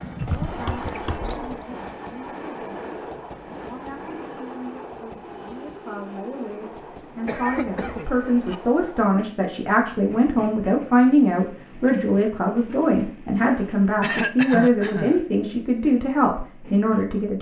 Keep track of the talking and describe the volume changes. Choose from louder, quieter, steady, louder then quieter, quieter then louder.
louder.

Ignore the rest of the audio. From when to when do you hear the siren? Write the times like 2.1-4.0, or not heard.
not heard.